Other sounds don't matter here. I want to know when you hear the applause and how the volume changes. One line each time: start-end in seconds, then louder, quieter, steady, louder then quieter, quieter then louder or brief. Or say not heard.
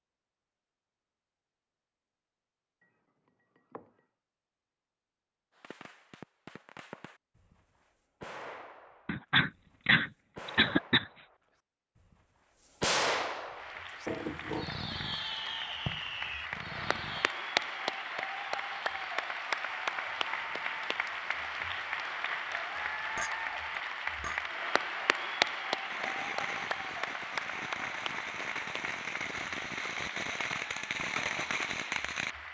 13.6-32.4 louder then quieter.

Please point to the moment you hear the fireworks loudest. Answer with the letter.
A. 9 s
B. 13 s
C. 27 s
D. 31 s
B.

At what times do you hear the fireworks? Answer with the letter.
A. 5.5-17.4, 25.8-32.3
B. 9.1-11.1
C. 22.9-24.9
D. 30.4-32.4
A.